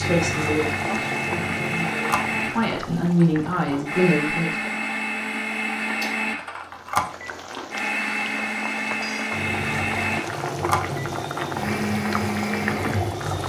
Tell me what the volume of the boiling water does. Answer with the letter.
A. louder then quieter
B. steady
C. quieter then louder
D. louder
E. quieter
C.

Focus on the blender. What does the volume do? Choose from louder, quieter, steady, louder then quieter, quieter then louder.
steady.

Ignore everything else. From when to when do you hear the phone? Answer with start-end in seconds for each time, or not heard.
1.9-2.4, 6.7-7.3, 10.4-11.1.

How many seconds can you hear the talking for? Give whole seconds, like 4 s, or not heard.
5 s.